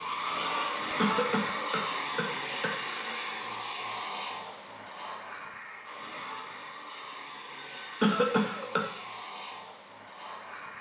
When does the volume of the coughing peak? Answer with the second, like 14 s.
8 s.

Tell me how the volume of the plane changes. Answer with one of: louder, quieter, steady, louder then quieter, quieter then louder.
quieter.